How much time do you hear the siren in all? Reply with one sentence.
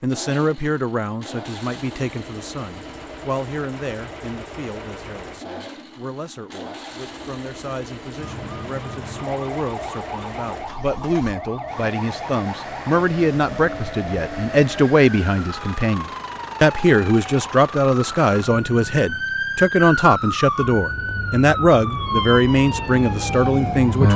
You can hear the siren for 16 seconds altogether.